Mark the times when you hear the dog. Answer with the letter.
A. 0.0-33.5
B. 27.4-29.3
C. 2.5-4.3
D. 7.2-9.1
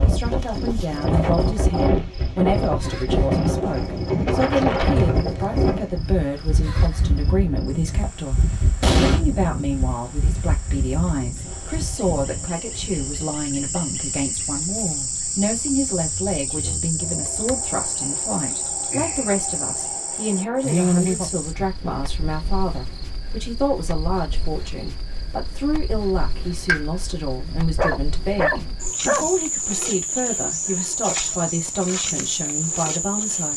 B.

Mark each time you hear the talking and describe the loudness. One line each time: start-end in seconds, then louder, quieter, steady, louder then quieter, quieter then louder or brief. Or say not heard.
0.0-33.5 steady.